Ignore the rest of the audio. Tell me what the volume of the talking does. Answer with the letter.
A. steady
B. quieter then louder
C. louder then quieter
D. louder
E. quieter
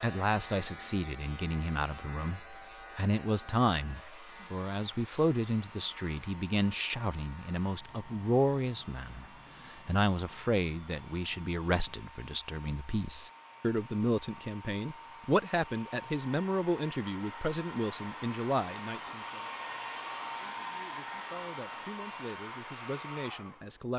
E.